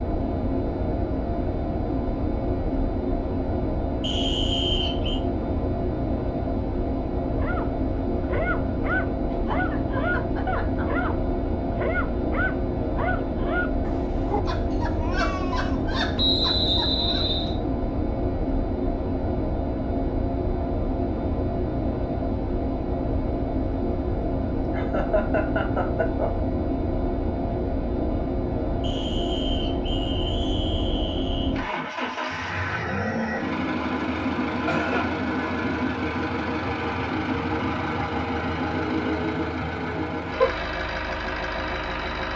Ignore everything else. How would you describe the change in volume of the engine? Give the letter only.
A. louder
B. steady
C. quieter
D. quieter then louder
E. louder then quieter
B.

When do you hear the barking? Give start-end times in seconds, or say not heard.
7.3-17.2.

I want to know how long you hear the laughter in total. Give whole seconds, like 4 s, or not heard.
4 s.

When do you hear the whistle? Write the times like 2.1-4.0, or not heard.
4.0-5.2, 16.1-17.6, 28.8-31.6.